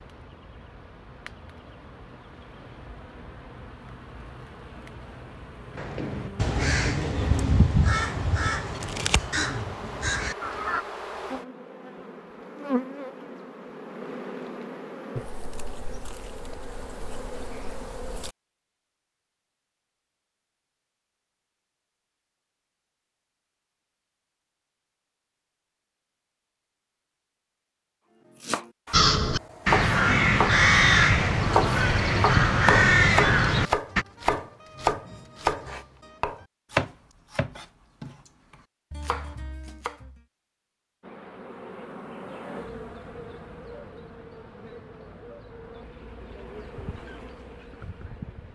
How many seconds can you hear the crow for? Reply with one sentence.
The crow can be heard for 10 seconds in total.